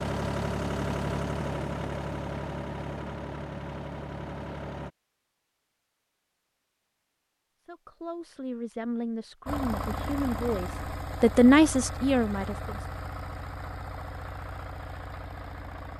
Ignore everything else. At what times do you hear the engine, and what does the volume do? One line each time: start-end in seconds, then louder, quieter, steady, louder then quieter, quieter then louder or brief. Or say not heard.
0.0-4.9 quieter
9.4-15.9 quieter.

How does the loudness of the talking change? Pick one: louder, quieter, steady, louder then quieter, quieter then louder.
louder.